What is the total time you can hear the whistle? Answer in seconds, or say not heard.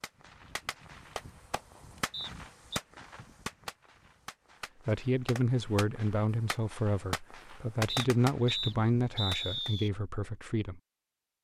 3 s.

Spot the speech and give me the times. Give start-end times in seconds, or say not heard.
4.8-10.8.